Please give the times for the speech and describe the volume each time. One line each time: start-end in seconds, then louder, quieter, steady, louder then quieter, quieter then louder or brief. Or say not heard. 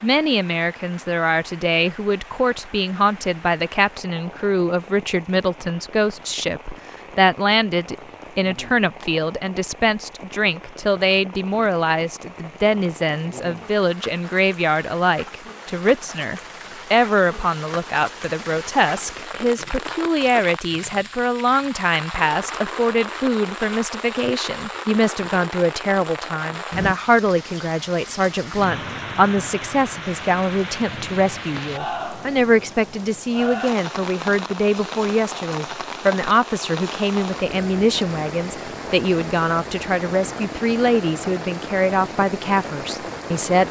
0.0-43.6 steady.